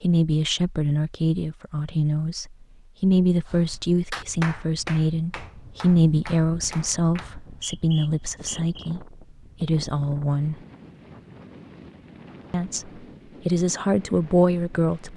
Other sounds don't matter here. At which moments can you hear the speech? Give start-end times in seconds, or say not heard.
0.0-10.6, 12.5-15.1.